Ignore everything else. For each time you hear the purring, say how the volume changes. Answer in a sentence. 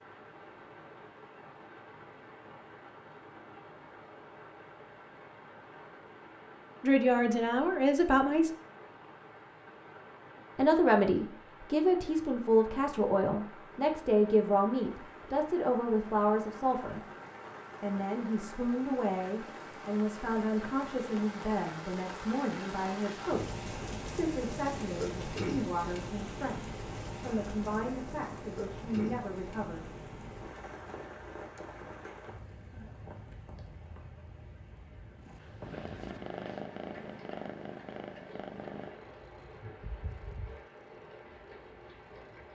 You can hear the purring from 35.2 to 42.5 s, getting quieter.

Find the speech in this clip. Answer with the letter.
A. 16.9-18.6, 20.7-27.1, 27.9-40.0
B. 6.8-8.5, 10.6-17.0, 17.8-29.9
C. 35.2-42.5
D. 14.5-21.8
B.